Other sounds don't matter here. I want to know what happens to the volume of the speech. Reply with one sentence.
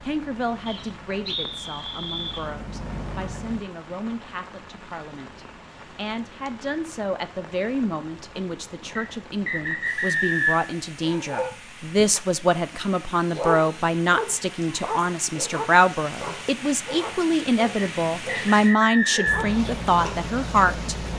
The loudness of the speech goes up.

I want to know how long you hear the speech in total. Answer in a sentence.
The speech can be heard for 21 seconds in total.